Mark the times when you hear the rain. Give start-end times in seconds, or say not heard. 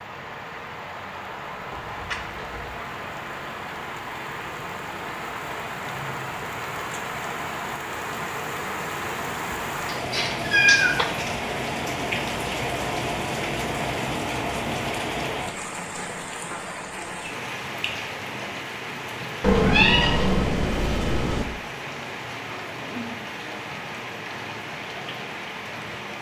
0.0-26.1.